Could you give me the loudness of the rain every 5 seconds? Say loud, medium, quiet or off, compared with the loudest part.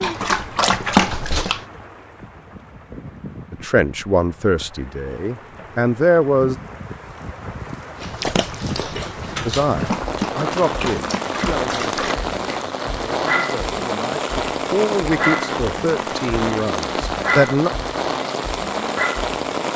quiet, medium, loud, loud.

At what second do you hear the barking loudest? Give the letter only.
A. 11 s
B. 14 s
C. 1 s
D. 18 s
C.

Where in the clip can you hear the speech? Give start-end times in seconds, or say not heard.
3.5-6.5, 9.4-17.7.